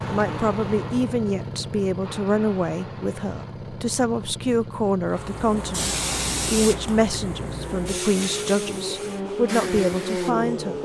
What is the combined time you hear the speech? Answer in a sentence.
The speech can be heard for 11 seconds in total.